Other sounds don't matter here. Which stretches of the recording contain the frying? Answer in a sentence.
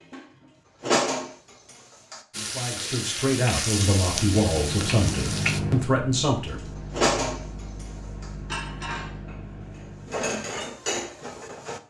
The frying can be heard from 2.3 to 5.6 s.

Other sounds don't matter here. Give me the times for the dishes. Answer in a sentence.
The dishes can be heard from 0.0 to 2.2 s and from 6.5 to 11.8 s.